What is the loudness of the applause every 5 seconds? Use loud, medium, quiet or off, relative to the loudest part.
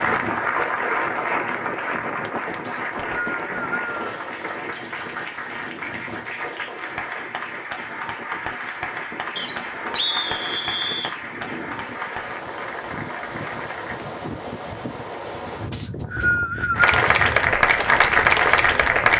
medium, quiet, quiet, loud.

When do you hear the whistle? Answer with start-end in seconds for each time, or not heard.
2.6-4.1, 9.3-11.2, 15.7-17.0.